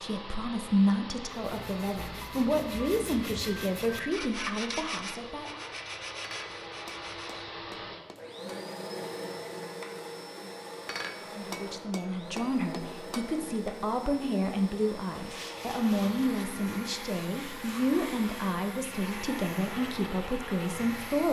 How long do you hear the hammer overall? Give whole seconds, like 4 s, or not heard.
5 s.